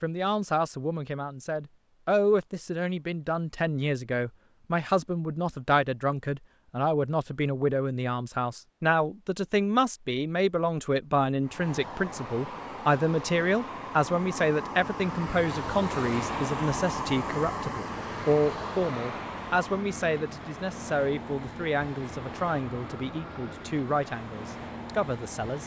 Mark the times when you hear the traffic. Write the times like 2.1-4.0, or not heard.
11.4-25.6.